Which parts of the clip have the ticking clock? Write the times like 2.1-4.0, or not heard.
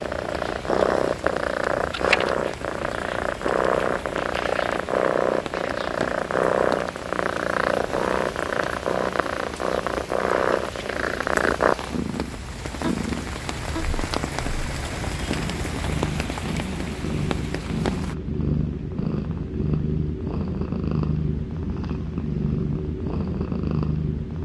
not heard.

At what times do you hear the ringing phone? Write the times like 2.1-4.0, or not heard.
not heard.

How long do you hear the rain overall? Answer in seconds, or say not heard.
18 s.